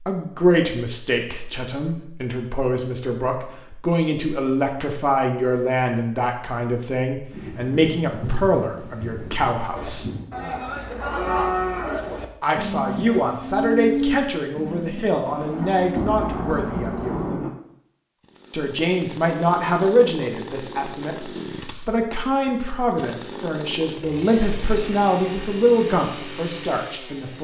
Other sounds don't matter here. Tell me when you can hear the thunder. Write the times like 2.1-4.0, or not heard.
7.3-10.3, 15.2-17.5.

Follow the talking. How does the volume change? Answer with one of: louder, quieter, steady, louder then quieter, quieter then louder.
steady.